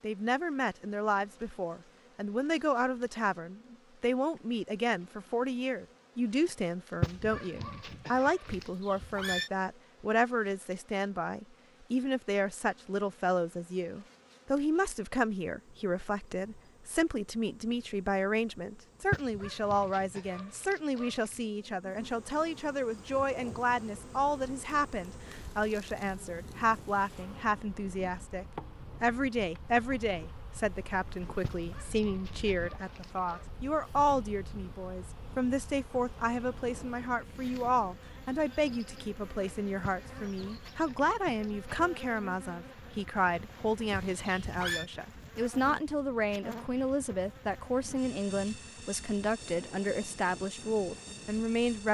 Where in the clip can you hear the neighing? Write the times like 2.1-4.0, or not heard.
8.4-9.5, 43.9-44.9.